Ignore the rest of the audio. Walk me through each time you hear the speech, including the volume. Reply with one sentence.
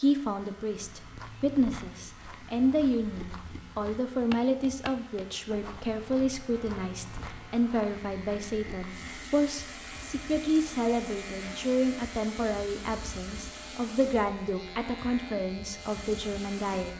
You can hear the speech from 0.0 to 16.9 s, at a steady volume.